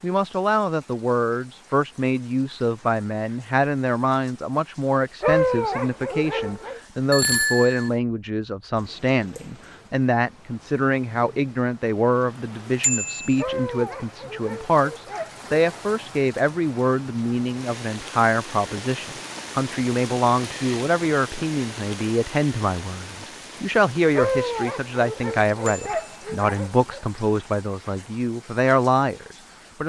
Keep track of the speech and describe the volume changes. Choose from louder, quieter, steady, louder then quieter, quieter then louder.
steady.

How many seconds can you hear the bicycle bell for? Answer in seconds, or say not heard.
2 s.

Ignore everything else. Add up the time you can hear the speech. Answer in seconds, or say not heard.
30 s.